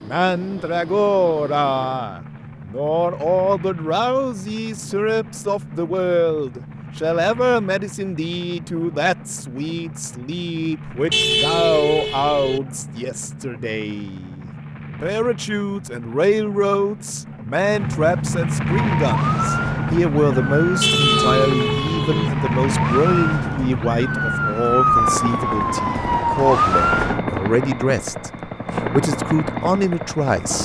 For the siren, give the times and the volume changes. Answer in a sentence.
You can hear the siren from 18.6 to 27.2 s, getting louder.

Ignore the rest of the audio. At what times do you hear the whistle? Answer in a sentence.
The whistle can't be heard in this clip.